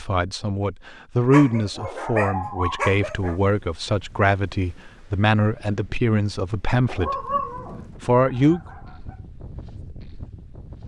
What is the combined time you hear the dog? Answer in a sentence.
The dog can be heard for 4 seconds in total.